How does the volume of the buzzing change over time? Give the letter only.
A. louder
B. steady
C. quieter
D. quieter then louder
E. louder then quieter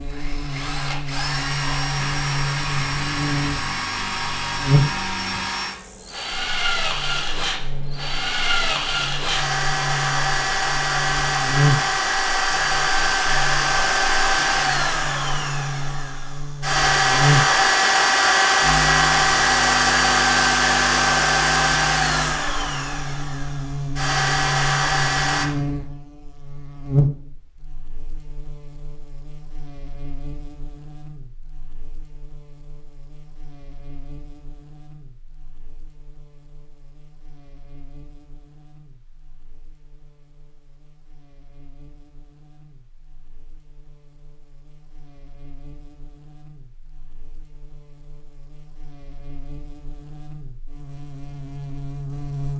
D.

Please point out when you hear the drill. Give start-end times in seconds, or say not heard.
0.1-25.5.